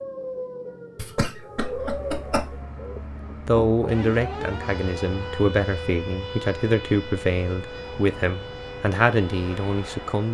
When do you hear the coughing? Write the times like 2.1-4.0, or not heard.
0.9-2.6.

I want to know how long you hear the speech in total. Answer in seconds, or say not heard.
7 s.